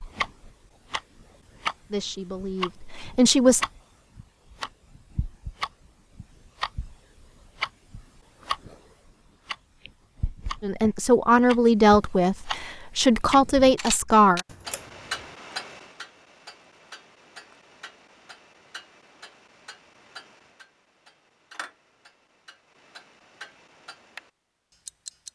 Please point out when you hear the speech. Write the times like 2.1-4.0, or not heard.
1.9-3.6, 10.6-14.4.